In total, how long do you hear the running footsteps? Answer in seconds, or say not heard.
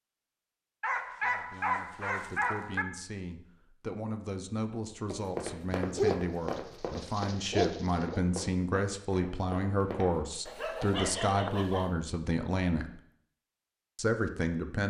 5 s.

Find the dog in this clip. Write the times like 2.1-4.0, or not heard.
0.8-2.9, 5.7-8.2, 10.4-11.9.